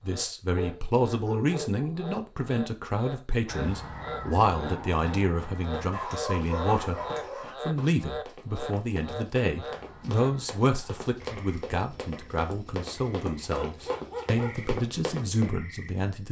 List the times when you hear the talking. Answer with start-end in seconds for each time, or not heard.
0.0-7.0, 7.7-16.2.